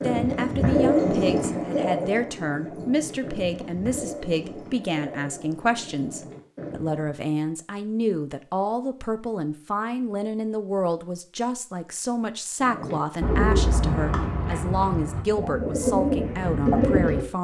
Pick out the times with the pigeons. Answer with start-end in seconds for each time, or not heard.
0.0-7.1, 12.6-17.2.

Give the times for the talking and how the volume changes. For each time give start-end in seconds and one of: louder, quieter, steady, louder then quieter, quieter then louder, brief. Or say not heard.
0.0-17.4 steady.